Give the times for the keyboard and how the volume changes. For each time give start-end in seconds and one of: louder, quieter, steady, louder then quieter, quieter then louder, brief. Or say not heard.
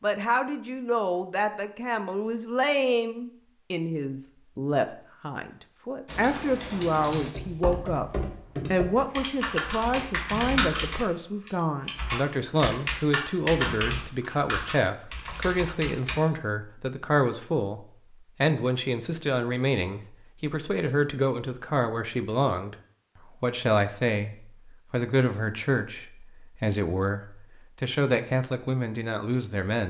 6.0-16.2 louder then quieter.